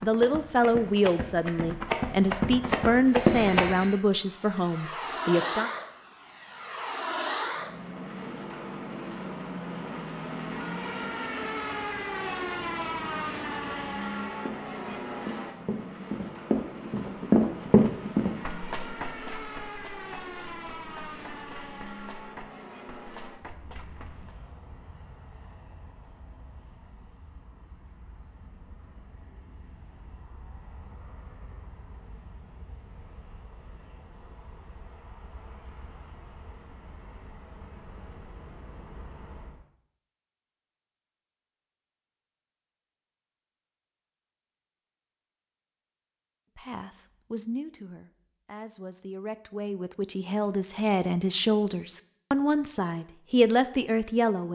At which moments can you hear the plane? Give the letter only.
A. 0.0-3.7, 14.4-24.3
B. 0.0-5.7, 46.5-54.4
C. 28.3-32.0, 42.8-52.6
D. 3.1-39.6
D.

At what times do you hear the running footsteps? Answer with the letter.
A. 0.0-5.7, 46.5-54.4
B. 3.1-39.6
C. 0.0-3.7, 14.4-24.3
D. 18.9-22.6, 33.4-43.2
C.